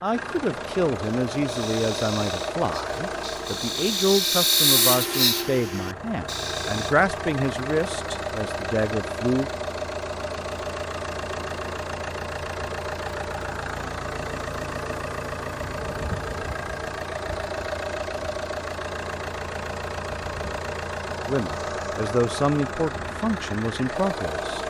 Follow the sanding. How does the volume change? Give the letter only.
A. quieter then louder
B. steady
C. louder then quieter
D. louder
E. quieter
C.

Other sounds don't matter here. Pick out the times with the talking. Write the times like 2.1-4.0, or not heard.
0.0-9.5, 21.2-24.6.